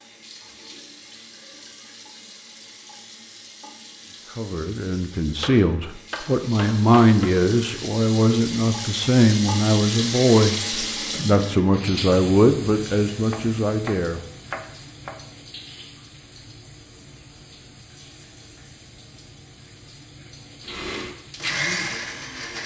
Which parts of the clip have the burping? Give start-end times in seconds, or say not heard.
not heard.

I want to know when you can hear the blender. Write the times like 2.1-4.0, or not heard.
20.6-22.6.